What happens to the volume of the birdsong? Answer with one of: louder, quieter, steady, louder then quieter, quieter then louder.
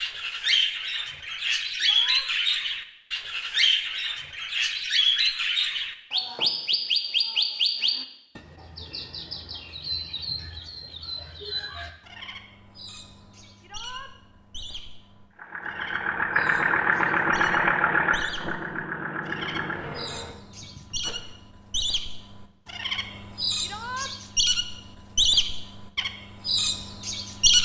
quieter then louder.